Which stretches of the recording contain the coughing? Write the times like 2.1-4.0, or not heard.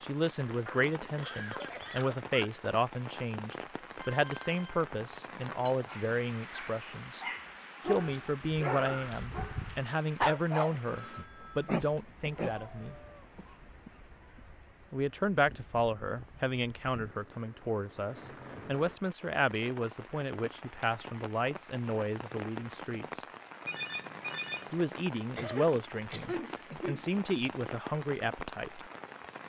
0.7-2.5, 12.2-14.6, 25.4-27.5.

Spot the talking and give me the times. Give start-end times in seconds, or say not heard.
0.0-7.2, 7.8-12.9, 14.9-23.2, 24.7-28.9.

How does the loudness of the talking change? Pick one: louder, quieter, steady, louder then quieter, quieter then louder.
steady.